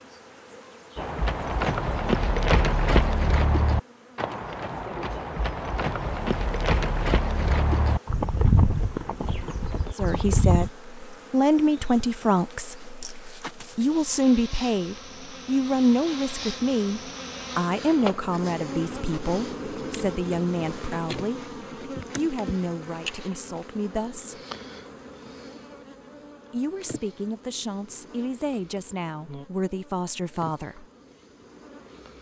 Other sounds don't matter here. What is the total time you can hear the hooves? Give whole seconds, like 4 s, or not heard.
10 s.